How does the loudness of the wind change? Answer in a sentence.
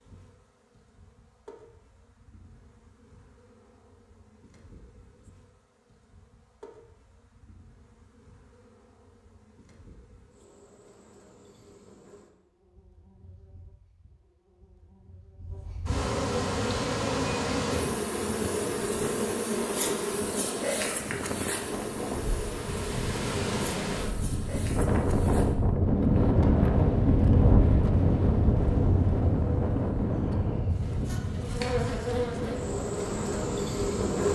The loudness of the wind goes up, then down.